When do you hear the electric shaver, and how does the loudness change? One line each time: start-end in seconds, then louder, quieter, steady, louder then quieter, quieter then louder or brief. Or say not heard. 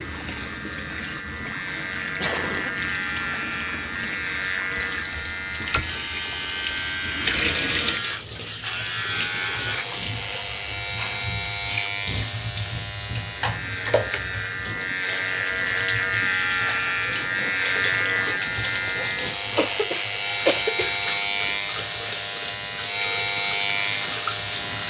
0.0-24.8 louder.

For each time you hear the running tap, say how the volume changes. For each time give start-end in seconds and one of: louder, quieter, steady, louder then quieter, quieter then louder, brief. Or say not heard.
0.0-24.8 louder.